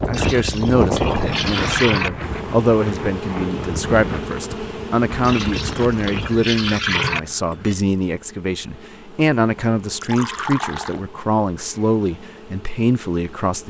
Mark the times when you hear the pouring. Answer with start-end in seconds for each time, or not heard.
0.1-2.1, 5.2-7.2, 9.8-11.0.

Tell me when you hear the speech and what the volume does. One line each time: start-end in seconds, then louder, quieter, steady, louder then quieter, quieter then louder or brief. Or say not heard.
0.1-13.6 steady.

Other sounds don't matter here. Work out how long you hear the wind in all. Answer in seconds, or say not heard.
7 s.